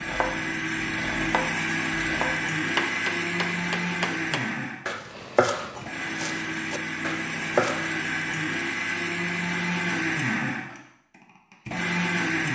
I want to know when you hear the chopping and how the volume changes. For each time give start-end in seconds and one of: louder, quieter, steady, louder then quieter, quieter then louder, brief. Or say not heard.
0.0-8.0 louder.